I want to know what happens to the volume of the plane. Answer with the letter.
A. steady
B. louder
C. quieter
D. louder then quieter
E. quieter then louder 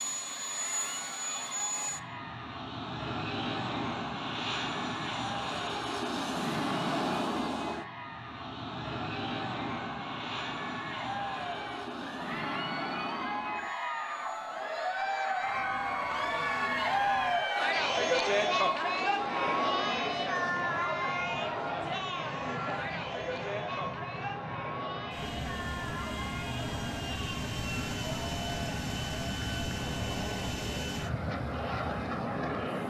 E.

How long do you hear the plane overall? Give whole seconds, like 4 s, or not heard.
33 s.